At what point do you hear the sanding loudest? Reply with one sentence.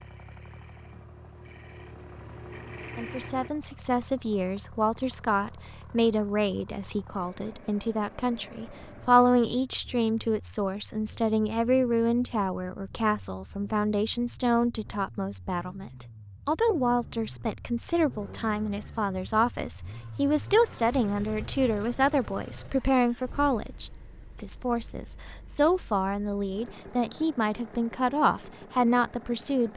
The volume of the sanding peaks at 3 seconds.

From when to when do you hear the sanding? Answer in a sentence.
The sanding can be heard from 0.0 to 3.5 s.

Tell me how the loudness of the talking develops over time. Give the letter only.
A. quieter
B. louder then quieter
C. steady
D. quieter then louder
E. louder
C.